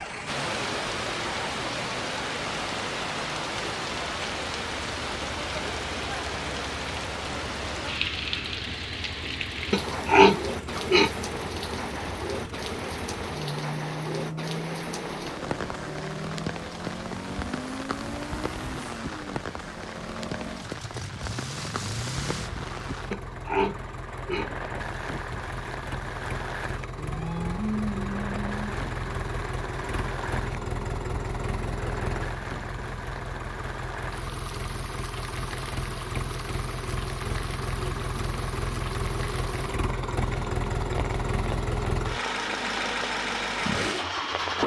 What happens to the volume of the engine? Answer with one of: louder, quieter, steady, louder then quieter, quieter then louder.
louder.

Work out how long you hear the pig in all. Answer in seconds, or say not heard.
3 s.